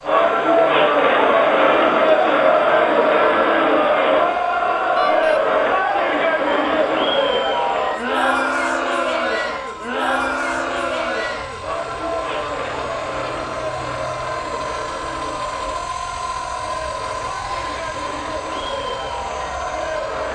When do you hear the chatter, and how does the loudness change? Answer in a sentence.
You can hear the chatter from 0.0 to 20.3 s, getting quieter.